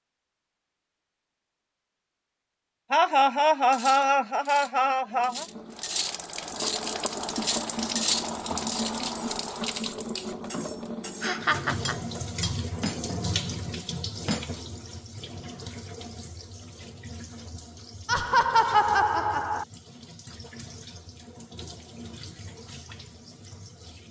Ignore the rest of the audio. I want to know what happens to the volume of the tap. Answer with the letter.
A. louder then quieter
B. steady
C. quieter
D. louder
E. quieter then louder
C.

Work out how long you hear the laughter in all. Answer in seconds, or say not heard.
5 s.